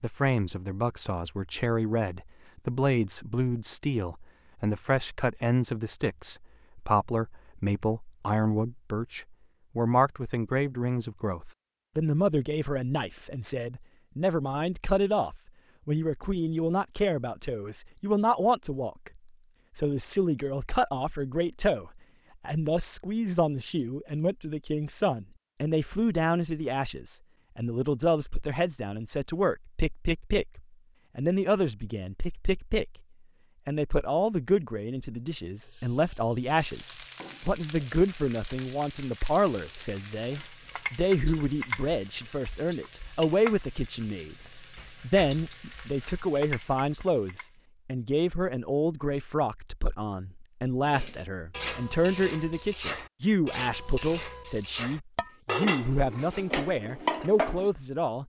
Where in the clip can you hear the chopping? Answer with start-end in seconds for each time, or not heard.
not heard.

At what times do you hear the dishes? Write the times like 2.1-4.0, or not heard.
50.9-57.7.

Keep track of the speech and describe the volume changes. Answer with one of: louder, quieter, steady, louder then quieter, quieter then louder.
steady.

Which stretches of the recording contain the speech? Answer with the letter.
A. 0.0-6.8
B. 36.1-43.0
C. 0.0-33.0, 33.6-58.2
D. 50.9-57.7
C.